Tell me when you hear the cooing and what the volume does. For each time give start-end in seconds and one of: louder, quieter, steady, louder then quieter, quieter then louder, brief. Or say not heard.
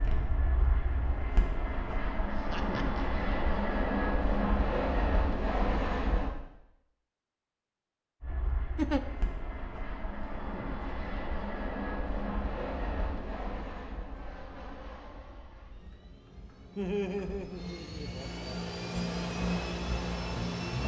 not heard.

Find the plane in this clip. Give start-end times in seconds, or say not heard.
0.0-6.3, 8.2-20.8.